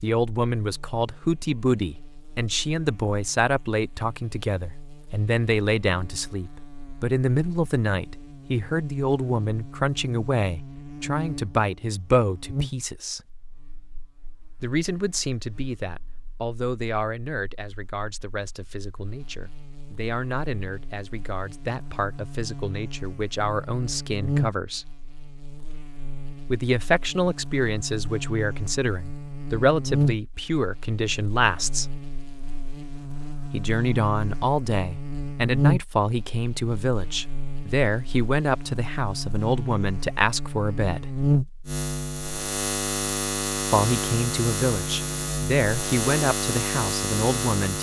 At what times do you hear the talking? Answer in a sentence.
You can hear the talking from 0.0 to 13.2 s, from 14.6 to 24.9 s, from 26.5 to 31.9 s, from 33.5 to 41.0 s and from 43.6 to 47.7 s.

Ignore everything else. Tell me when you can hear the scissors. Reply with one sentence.
The scissors can't be heard in this clip.